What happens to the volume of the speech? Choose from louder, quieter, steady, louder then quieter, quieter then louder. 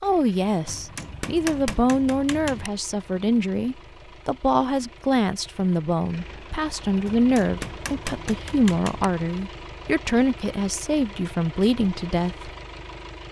steady.